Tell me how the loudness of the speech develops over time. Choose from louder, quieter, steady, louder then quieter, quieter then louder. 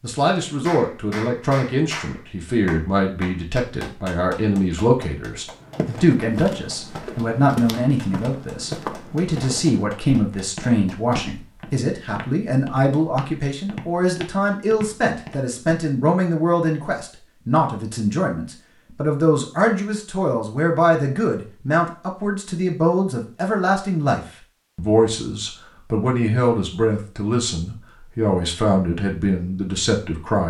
steady.